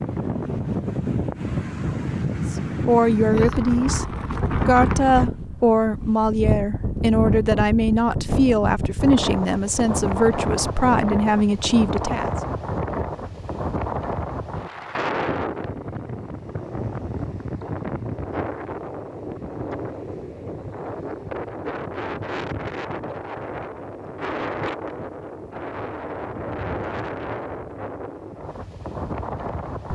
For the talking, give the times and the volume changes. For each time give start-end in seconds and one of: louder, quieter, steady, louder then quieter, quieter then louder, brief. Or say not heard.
2.5-12.3 steady.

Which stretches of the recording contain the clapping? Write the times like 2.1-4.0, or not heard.
not heard.